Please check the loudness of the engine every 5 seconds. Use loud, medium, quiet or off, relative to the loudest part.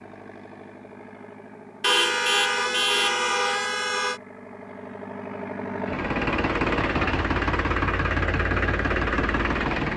quiet, loud.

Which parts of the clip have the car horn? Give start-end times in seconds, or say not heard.
1.8-4.2.